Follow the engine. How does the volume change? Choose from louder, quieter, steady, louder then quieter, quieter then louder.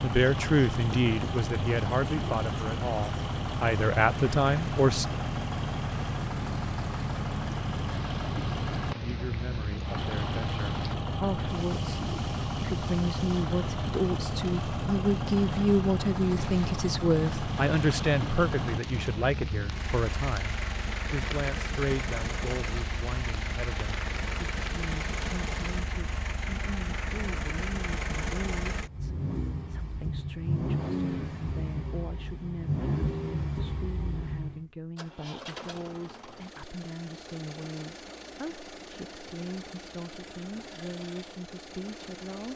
quieter.